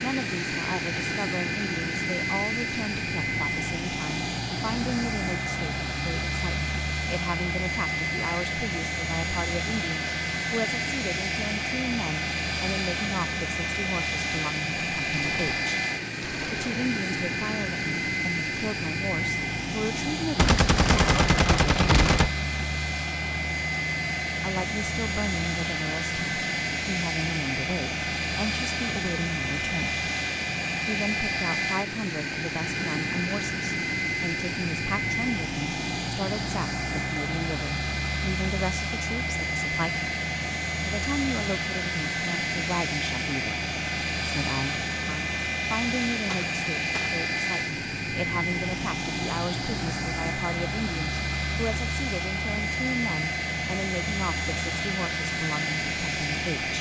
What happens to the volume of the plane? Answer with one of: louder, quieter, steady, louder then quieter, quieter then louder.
steady.